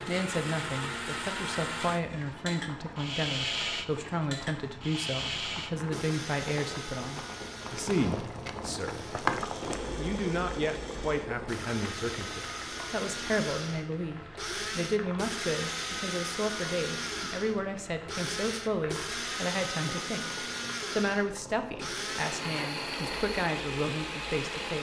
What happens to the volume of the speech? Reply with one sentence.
The loudness of the speech stays about the same.